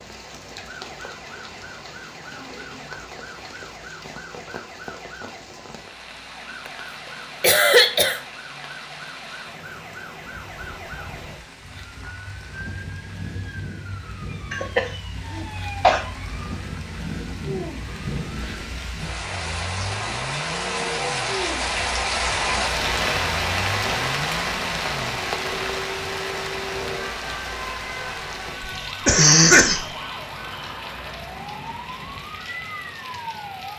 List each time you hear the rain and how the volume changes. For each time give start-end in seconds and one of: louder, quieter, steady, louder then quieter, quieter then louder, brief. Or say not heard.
0.0-33.7 louder then quieter.